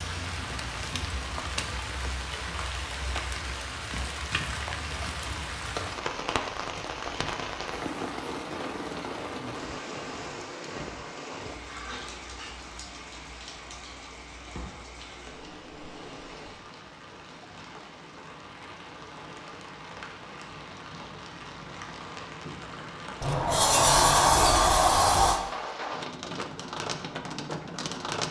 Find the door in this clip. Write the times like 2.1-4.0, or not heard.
23.2-25.4.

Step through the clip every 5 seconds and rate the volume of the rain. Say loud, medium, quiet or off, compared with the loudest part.
loud, loud, medium, medium, medium, loud.